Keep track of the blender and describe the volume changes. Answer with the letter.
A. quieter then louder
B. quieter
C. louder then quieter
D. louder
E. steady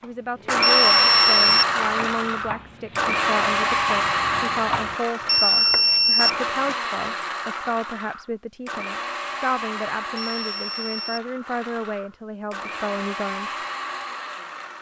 B.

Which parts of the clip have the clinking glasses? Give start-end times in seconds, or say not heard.
not heard.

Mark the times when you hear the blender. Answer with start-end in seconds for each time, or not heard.
0.0-14.7.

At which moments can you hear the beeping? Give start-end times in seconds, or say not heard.
0.6-1.9, 5.2-6.8, 10.2-11.2.